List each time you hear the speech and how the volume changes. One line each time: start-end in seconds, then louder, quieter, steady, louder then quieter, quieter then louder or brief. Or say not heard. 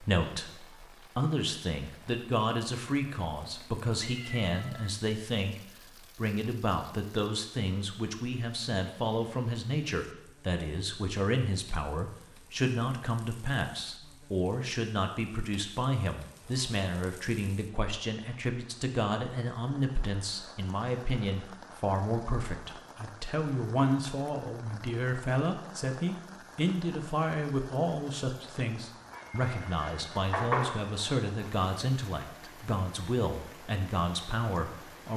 0.0-35.1 steady.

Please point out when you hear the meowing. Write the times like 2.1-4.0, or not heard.
3.5-4.9, 29.1-30.8.